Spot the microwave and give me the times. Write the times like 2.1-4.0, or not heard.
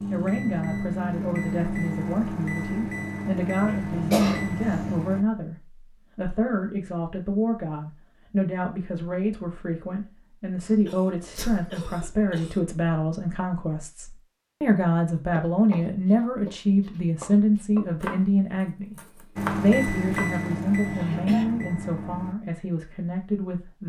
0.0-5.2, 19.4-22.4.